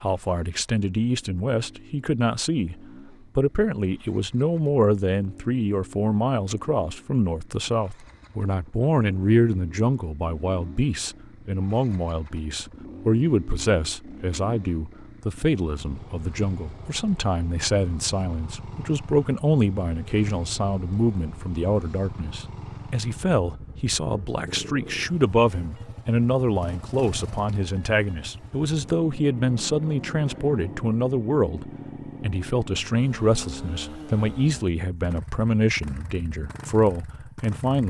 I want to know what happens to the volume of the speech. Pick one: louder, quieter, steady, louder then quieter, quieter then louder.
steady.